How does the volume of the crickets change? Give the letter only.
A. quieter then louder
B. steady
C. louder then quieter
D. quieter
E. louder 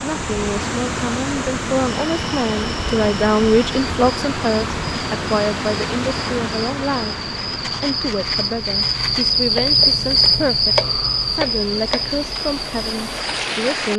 C.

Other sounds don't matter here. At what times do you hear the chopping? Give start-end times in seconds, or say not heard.
9.5-12.1.